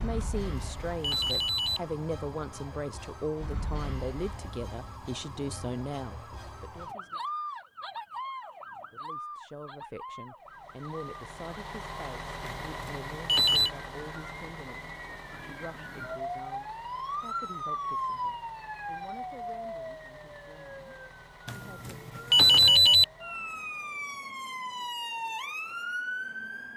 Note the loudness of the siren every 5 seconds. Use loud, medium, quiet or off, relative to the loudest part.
medium, medium, medium, loud, medium, loud.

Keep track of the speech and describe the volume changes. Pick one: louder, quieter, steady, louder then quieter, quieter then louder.
quieter.